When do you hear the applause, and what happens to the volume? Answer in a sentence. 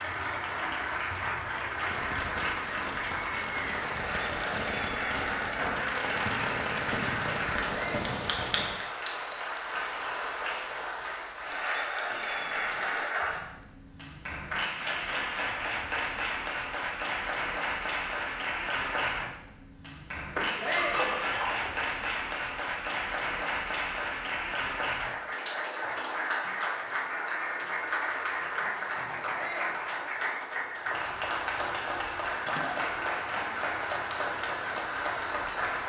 You can hear the applause from 0.0 to 35.8 s, at a steady volume.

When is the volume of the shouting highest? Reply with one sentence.
The loudest moment of the shouting is at 21 seconds.